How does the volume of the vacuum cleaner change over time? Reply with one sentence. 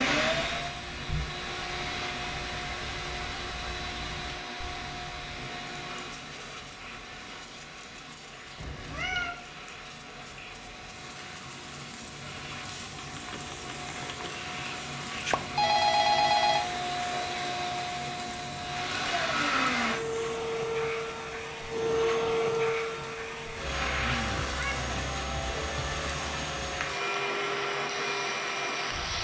The loudness of the vacuum cleaner goes down, then up.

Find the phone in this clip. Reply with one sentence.
You can hear the phone from 15.2 to 16.6 s.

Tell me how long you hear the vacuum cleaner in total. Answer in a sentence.
The vacuum cleaner can be heard for 29 seconds in total.